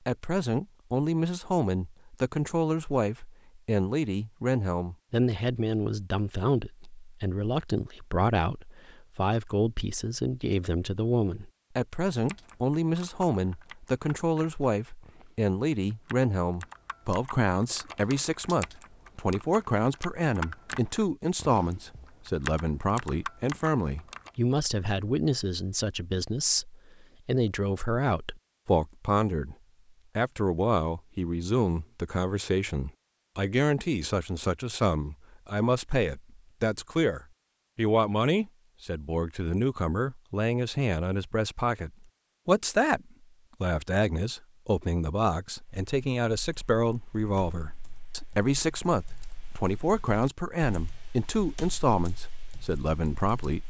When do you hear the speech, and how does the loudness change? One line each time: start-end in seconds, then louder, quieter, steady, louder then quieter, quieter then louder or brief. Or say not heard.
0.1-29.6 steady
30.1-53.6 steady.